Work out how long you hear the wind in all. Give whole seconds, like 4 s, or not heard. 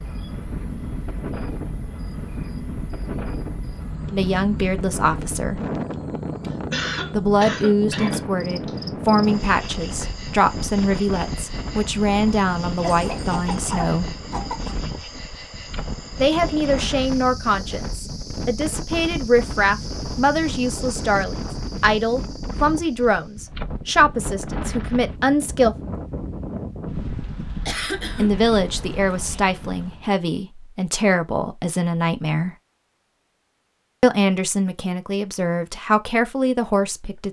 30 s.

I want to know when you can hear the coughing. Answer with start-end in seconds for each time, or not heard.
6.5-8.8, 12.8-14.8, 27.6-28.3.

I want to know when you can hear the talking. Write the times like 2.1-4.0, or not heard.
4.1-5.6, 7.1-14.1, 16.2-25.8, 28.1-32.5, 34.0-37.2.